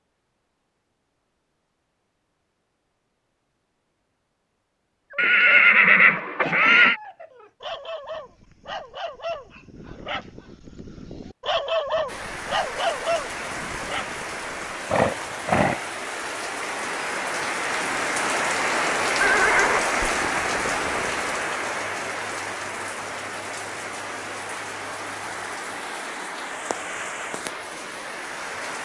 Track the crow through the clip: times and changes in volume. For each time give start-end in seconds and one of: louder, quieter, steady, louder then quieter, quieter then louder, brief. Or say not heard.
not heard.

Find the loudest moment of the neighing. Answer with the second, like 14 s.
6 s.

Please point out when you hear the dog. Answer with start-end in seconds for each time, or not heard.
5.1-14.9.